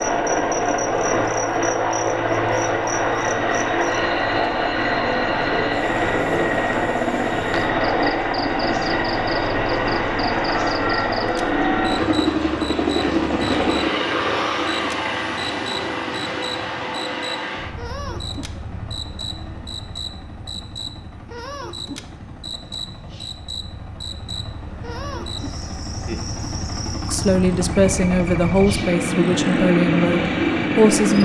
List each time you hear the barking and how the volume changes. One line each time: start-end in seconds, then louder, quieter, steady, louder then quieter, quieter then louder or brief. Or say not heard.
not heard.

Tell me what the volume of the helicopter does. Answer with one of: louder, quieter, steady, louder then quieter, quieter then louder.
quieter then louder.